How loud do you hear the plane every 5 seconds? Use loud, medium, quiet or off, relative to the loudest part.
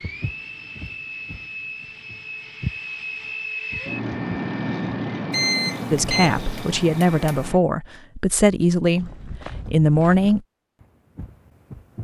loud, loud, off.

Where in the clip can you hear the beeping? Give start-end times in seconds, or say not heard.
5.3-7.5.